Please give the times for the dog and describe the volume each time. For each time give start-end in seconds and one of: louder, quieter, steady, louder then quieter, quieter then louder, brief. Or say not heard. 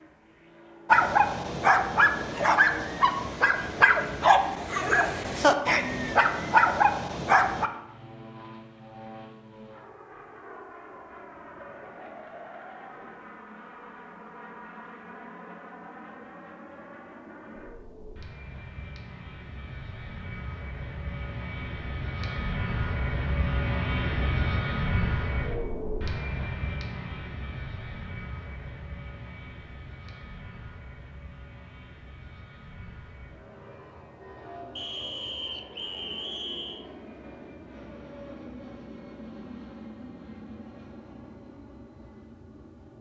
0.8-7.7 steady.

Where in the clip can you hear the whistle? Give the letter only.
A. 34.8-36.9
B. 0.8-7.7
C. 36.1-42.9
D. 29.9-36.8
A.